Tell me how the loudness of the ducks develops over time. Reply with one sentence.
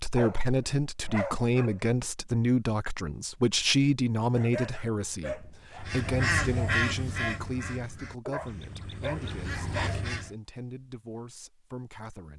The loudness of the ducks goes down, then up.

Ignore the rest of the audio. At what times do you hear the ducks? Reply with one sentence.
The ducks can be heard from 5.8 to 10.3 s.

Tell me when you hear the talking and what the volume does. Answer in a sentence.
You can hear the talking from 0.0 to 12.3 s, getting quieter.